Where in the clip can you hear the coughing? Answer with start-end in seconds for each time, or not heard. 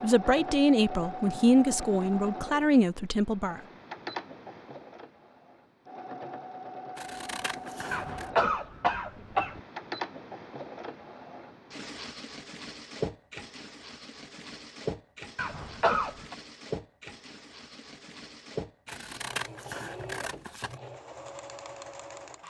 7.9-9.6, 15.3-16.4.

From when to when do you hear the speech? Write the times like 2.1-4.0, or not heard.
0.0-3.6.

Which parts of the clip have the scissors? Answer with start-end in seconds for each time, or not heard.
7.0-8.3, 18.9-20.8.